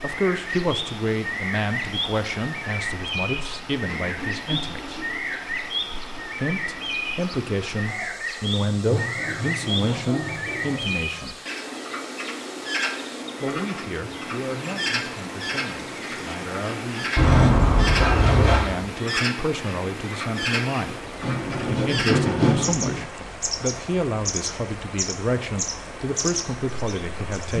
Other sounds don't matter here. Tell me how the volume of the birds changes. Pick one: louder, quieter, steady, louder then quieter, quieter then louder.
steady.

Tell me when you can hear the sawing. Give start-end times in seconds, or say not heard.
3.7-5.3, 8.8-11.0, 17.1-18.6, 21.2-23.0.